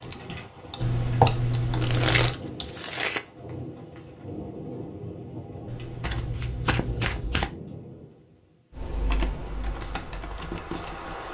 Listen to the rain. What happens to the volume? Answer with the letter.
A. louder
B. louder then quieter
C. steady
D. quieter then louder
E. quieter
E.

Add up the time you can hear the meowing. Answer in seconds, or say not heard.
3 s.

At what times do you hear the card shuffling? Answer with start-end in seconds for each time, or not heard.
1.2-3.2, 6.0-7.5.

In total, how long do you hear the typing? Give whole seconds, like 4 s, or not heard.
5 s.